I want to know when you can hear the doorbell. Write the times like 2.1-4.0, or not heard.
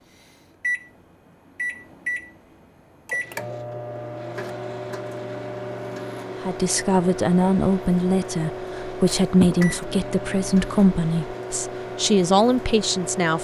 9.1-9.7.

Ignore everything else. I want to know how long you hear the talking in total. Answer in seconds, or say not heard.
7 s.